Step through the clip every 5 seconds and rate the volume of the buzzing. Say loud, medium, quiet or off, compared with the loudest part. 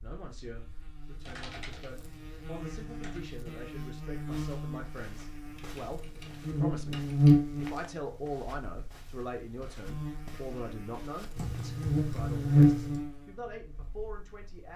quiet, loud, loud.